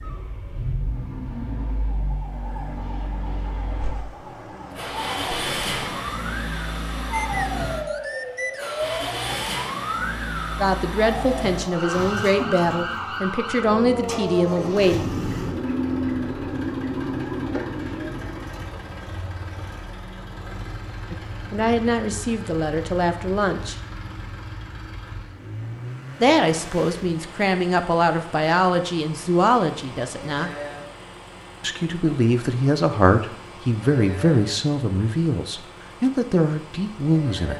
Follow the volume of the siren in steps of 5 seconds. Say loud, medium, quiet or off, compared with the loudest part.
quiet, loud, loud, loud, off, off, off, off.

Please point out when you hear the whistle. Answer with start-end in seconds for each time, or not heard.
7.1-8.9.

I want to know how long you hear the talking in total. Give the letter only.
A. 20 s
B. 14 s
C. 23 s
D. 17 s
D.